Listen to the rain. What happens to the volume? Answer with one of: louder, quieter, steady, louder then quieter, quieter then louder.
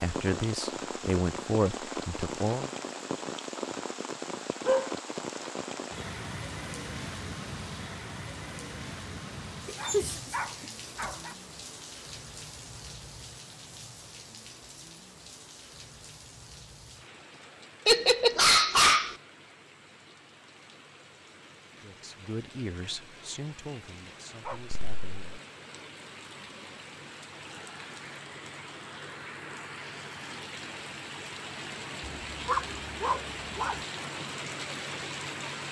quieter then louder.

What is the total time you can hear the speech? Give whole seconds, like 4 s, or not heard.
6 s.